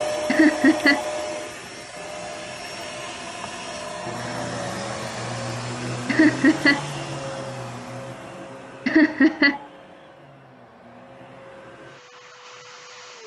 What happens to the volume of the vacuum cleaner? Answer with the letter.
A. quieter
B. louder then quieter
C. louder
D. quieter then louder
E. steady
A.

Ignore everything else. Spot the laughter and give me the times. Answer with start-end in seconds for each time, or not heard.
0.2-1.1, 6.0-6.8, 8.8-9.6.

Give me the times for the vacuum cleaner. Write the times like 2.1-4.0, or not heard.
0.0-13.2.